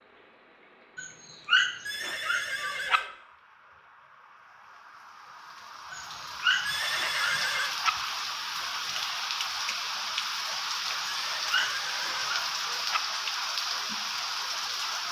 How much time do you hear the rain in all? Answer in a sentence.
You can hear the rain for 15 seconds altogether.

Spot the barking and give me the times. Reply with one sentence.
You can hear the barking from 0.9 to 3.0 s, from 5.9 to 7.9 s and from 10.9 to 13.0 s.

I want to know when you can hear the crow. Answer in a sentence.
The crow can't be heard in this clip.